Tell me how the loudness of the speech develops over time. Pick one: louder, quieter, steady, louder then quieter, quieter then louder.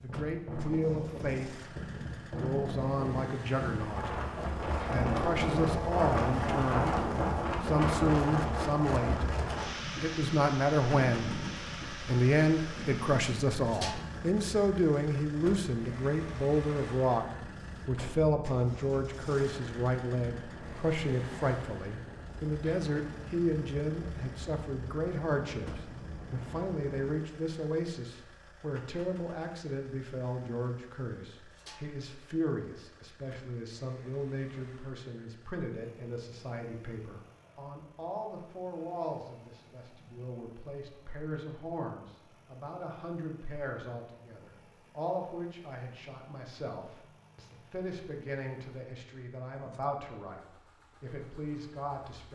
quieter.